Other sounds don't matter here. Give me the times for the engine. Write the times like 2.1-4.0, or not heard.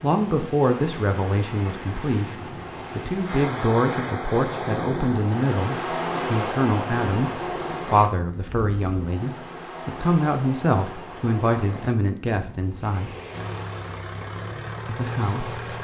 13.3-15.7.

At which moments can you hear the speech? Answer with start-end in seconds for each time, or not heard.
0.0-13.1, 14.8-15.7.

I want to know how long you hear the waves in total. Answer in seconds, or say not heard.
16 s.